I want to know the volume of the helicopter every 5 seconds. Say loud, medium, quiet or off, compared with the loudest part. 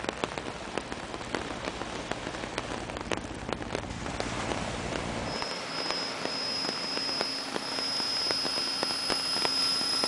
medium, loud.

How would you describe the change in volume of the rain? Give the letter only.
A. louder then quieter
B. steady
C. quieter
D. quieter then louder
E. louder
B.